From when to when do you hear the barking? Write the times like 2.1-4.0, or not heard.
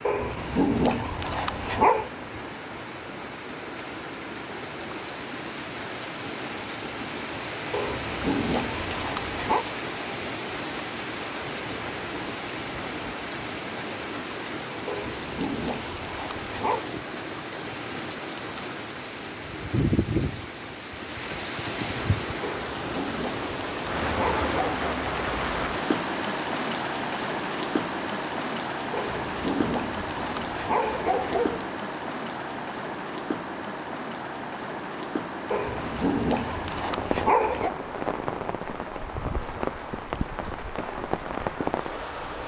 0.1-2.1, 7.7-9.7, 14.8-16.9, 22.5-24.9, 28.9-31.7, 35.5-37.7.